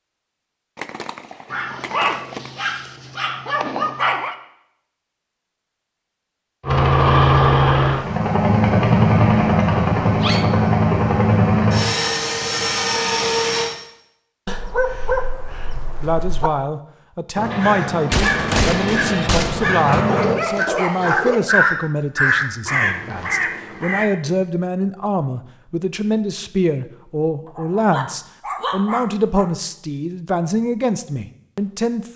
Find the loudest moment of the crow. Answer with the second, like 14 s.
22 s.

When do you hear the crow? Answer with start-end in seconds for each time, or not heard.
17.4-24.1.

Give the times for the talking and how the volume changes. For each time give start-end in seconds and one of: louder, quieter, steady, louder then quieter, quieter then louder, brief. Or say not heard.
16.0-32.1 steady.